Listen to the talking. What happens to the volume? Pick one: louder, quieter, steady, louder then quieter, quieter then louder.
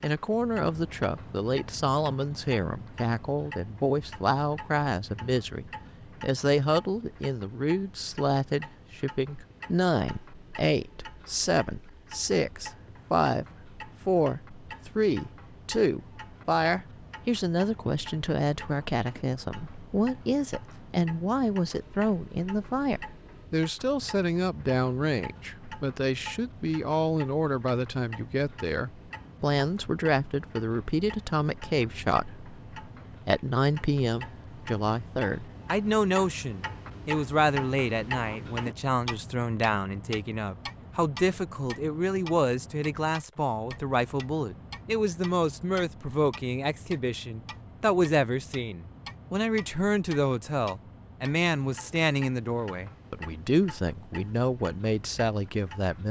steady.